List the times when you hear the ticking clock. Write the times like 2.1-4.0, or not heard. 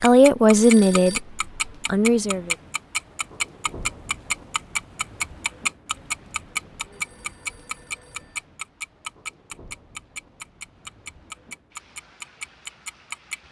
0.0-13.4.